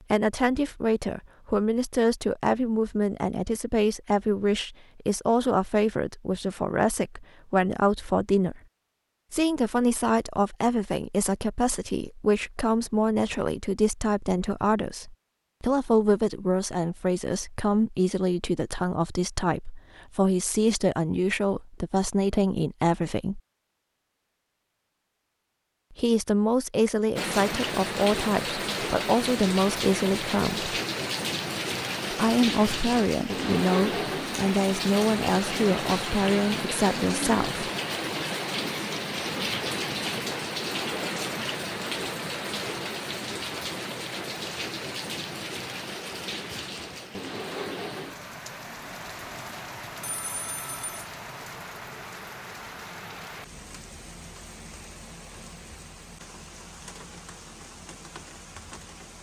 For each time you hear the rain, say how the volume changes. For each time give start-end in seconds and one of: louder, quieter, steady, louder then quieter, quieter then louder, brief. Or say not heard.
27.1-59.1 quieter.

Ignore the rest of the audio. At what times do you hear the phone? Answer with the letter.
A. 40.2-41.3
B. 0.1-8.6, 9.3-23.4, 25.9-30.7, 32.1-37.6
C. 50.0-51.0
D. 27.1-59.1
C.